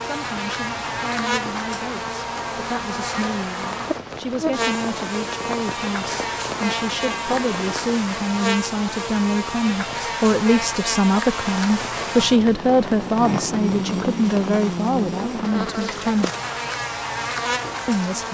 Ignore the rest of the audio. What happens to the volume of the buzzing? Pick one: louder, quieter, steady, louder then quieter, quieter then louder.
steady.